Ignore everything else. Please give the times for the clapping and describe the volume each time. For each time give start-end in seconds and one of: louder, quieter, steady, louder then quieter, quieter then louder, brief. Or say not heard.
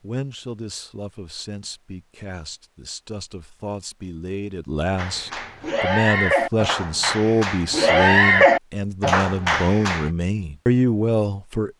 5.0-10.1 louder then quieter.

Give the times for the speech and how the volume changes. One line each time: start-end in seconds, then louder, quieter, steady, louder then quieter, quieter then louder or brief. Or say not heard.
0.0-11.7 louder.